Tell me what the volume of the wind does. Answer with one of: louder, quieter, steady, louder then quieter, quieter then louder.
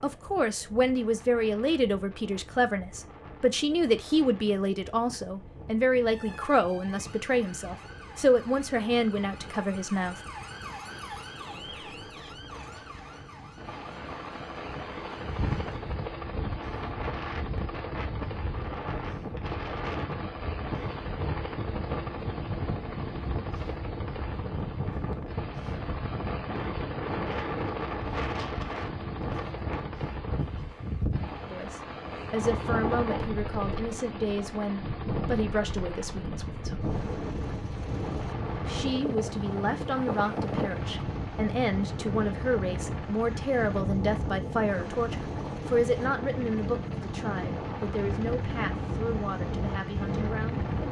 louder.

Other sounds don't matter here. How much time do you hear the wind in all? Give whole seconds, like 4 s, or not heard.
51 s.